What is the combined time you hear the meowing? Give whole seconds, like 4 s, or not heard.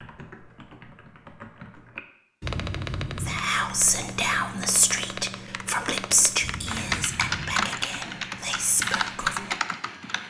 2 s.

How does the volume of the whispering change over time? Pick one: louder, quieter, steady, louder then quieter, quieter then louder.
quieter.